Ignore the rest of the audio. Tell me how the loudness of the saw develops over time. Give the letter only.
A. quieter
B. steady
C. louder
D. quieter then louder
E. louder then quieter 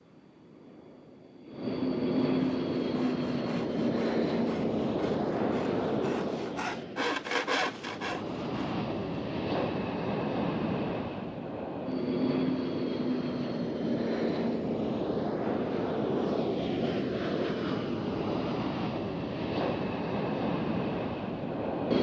C.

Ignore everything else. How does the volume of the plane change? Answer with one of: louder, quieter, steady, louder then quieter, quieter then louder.
steady.